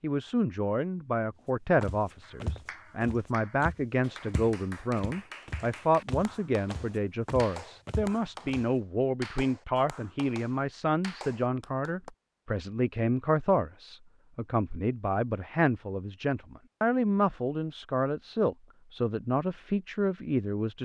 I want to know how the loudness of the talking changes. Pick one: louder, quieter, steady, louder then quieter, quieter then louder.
steady.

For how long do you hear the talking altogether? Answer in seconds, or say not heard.
21 s.